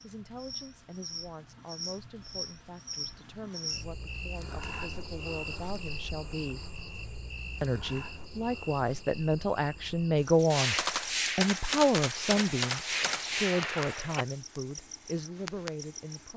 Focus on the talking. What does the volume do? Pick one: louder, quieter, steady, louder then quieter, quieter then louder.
louder then quieter.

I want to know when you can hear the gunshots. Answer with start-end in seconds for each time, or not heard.
10.5-14.2.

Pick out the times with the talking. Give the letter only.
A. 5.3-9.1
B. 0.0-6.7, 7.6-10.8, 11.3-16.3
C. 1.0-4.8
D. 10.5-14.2
B.